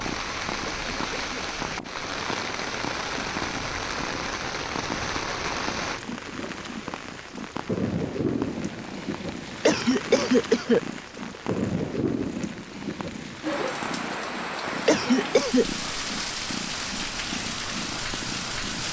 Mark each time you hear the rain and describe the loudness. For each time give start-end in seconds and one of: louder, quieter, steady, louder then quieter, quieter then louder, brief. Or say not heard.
0.0-18.8 steady.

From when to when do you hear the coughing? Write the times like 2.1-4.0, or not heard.
0.7-1.6, 9.7-10.8, 14.8-15.7.